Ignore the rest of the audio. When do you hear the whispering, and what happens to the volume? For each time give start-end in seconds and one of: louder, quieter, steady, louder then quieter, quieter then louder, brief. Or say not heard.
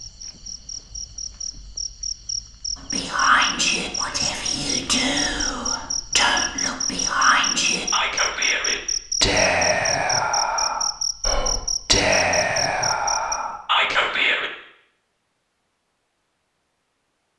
2.8-14.5 steady.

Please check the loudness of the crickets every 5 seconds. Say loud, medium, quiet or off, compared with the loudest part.
medium, loud, loud, off.